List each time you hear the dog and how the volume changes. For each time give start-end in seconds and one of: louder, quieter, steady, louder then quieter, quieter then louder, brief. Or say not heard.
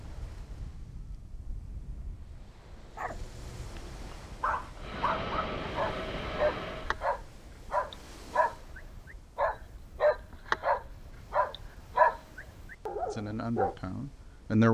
3.0-13.8 louder.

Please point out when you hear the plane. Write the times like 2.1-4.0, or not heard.
4.8-7.0.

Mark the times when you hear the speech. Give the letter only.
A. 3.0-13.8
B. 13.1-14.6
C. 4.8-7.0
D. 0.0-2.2
B.